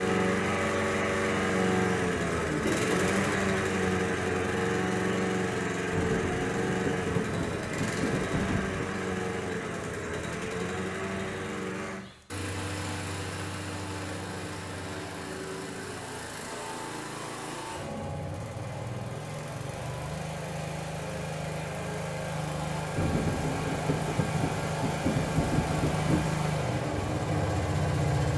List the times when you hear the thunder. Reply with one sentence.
The thunder can be heard from 5.9 to 8.9 s and from 22.9 to 26.4 s.